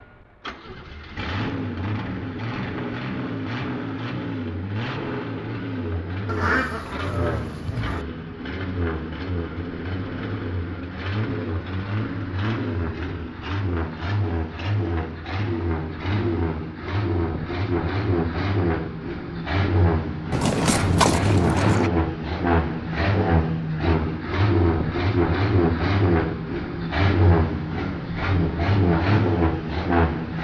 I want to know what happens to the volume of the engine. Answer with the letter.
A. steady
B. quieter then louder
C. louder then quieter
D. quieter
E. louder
E.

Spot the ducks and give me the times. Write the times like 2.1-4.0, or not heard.
6.2-8.1, 20.3-21.9.